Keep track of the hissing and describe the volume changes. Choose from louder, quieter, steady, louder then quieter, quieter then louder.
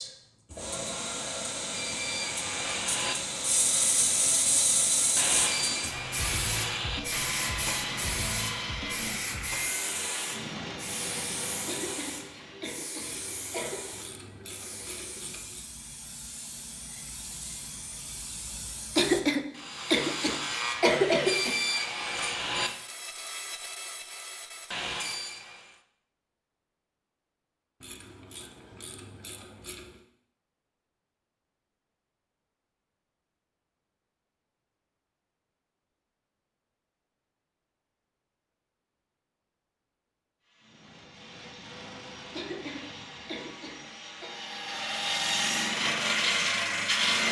quieter.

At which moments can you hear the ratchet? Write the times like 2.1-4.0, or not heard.
13.0-15.7, 27.8-30.0.